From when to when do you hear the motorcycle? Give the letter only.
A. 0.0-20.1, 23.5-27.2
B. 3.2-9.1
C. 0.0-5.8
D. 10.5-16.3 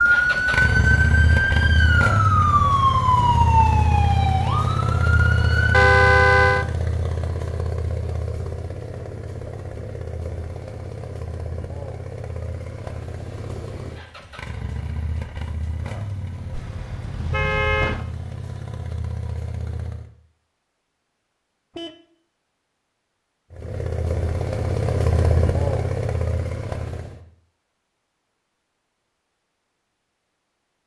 A.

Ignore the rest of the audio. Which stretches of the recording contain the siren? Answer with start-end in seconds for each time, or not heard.
0.0-5.8.